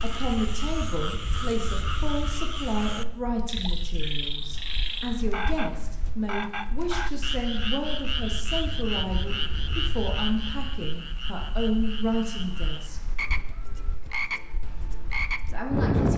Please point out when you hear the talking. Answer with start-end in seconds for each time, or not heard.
0.0-13.0, 15.5-16.1.